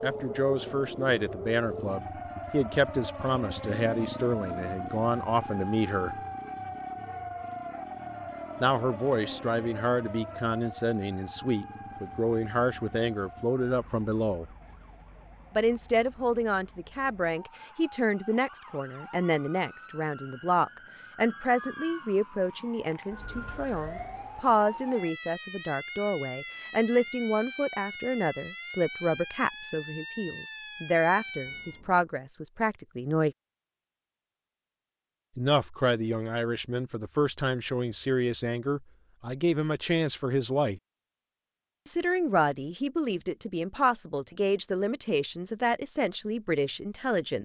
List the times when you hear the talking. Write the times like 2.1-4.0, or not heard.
0.0-6.2, 8.6-14.4, 15.6-33.4, 35.4-40.8, 41.9-47.4.